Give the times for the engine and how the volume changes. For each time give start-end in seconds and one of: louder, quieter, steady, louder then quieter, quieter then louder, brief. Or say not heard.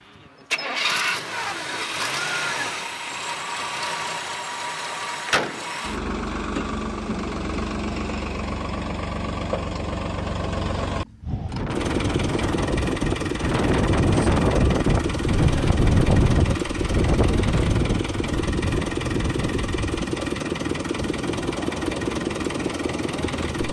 0.0-23.6 steady.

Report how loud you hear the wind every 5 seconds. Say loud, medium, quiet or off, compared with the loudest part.
off, off, loud, loud, medium.